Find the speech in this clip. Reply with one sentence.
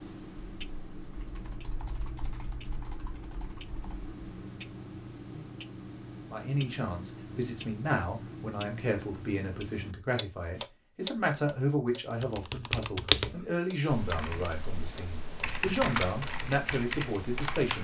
You can hear the speech from 6.3 to 17.8 s.